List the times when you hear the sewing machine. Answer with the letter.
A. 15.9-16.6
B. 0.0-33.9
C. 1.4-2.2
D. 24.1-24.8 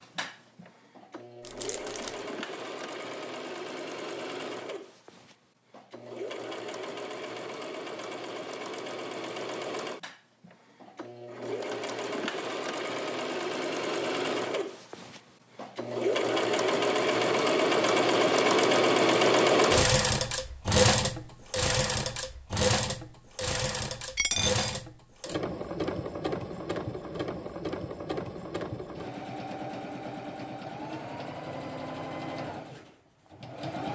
B.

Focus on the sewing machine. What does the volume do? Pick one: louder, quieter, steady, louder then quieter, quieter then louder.
louder then quieter.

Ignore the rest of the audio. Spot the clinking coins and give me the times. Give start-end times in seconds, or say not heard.
24.1-24.8.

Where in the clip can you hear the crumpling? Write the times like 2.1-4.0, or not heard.
1.4-2.2.